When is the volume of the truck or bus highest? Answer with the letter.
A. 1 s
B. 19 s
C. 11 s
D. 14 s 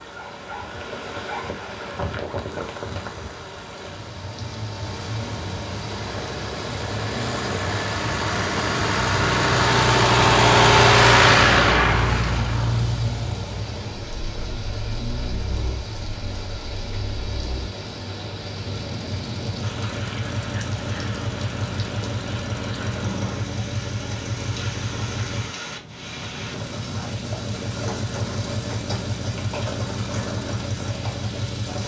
C.